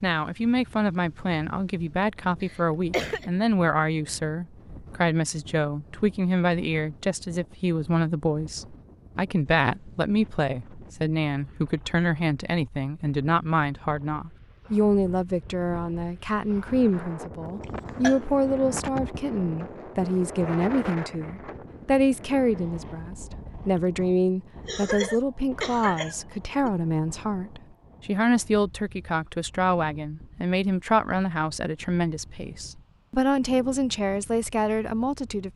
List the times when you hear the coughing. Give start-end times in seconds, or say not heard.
2.4-3.2, 17.6-18.2, 24.6-26.7.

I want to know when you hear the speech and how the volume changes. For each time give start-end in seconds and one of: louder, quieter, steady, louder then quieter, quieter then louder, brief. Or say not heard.
0.0-35.5 steady.